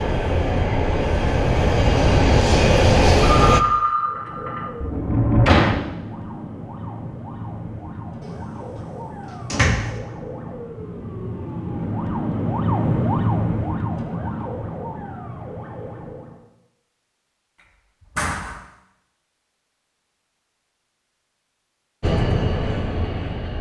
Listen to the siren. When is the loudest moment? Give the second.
13 s.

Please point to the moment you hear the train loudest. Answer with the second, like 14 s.
3 s.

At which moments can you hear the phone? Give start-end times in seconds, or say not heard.
3.4-4.7.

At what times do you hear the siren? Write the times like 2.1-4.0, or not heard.
3.9-16.4.